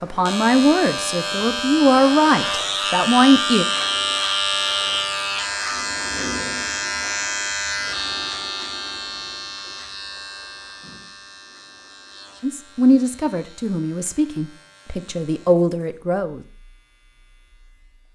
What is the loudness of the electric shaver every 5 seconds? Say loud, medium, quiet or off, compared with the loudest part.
loud, loud, quiet, quiet.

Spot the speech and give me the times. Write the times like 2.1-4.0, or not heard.
0.0-3.6, 12.4-16.4.